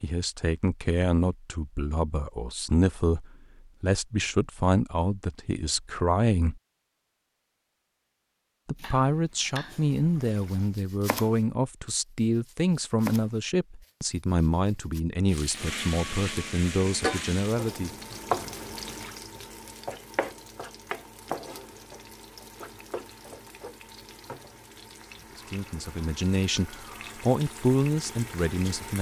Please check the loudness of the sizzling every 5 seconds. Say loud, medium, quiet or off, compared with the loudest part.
off, off, off, loud, medium, medium.